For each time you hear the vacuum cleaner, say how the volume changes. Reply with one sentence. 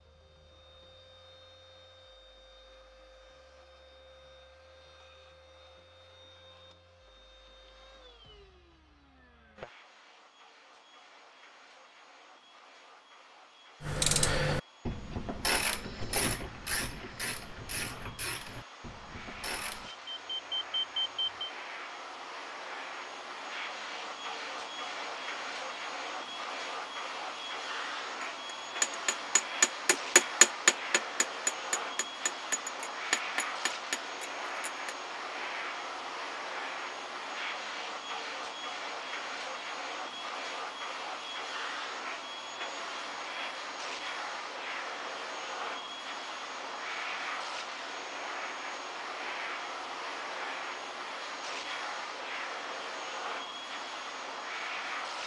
The vacuum cleaner can be heard from 0.0 to 55.2 s, getting louder.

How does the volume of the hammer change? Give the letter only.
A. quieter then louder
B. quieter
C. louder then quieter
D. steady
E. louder
C.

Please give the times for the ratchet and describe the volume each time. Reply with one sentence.
The ratchet can be heard from 13.8 to 19.9 s, getting quieter.